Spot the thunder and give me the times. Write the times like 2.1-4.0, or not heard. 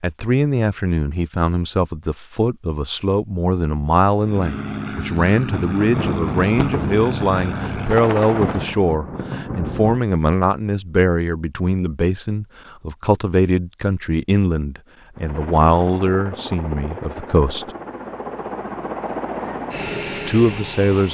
5.5-10.0.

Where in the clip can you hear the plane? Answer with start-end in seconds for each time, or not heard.
4.2-8.8, 15.2-21.0.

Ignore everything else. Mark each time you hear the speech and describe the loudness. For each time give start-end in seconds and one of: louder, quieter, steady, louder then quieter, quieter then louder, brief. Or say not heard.
0.0-17.7 steady
20.2-21.0 brief.